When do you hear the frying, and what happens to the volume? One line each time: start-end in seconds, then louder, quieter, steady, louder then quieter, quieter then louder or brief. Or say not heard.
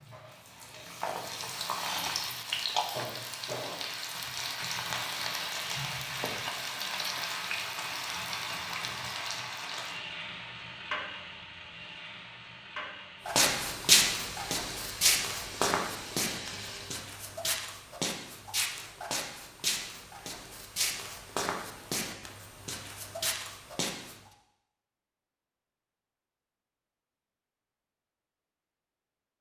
0.0-17.0 quieter.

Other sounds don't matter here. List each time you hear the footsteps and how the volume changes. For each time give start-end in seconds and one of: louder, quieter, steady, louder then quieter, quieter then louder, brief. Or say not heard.
13.2-24.1 quieter.